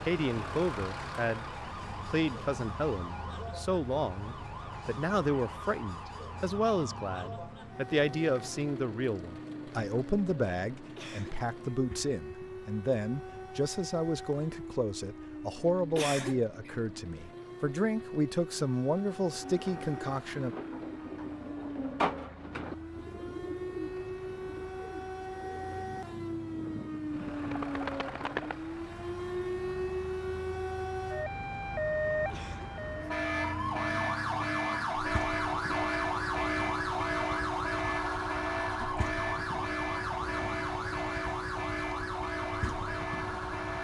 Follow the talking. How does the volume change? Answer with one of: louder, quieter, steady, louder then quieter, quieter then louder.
steady.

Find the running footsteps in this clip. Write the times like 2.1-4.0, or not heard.
not heard.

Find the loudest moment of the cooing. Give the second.
22 s.